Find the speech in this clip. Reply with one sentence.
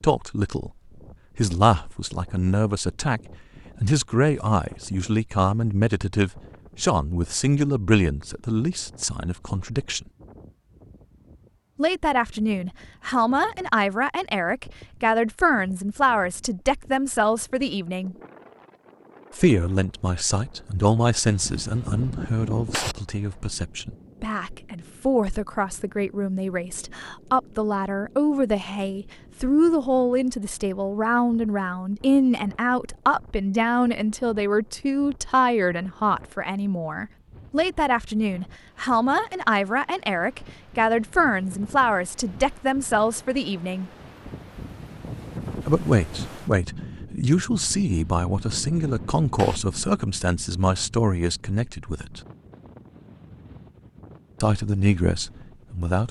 The speech can be heard from 0.0 to 0.7 s, from 1.4 to 10.1 s, from 11.8 to 18.1 s, from 19.4 to 43.9 s, from 45.6 to 52.2 s and from 54.4 to 56.0 s.